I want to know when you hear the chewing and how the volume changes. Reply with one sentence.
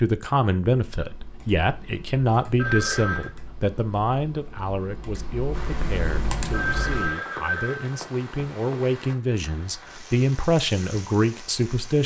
The chewing can't be heard in this clip.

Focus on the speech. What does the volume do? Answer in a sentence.
The volume of the speech goes down, then up.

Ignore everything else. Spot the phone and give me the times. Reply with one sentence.
You can hear the phone from 2.5 to 3.3 s and from 6.5 to 8.4 s.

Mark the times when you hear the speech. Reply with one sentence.
You can hear the speech from 0.0 to 12.0 s.